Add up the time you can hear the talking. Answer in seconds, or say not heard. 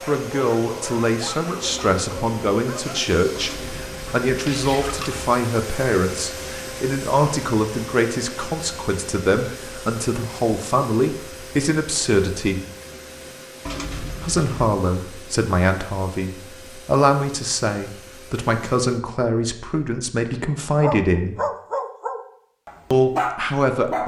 21 s.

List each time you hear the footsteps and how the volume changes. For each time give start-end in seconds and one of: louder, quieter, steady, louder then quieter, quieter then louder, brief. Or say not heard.
not heard.